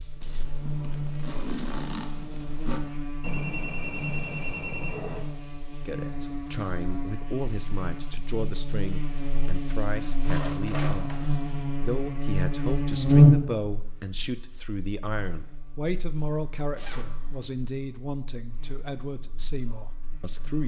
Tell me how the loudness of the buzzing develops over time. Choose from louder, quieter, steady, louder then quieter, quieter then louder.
louder then quieter.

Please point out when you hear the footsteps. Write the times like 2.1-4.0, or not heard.
not heard.